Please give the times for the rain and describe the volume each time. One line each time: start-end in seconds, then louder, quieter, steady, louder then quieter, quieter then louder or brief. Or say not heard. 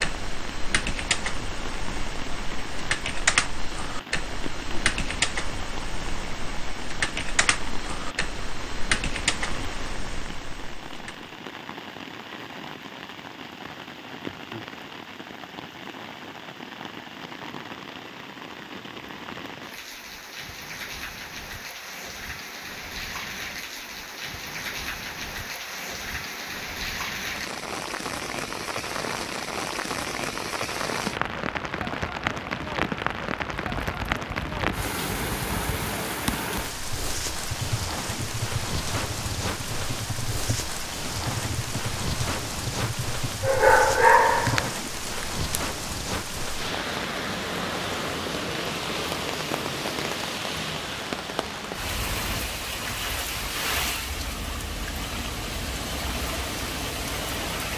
0.0-57.7 louder.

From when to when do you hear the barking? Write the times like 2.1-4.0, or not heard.
43.4-44.7.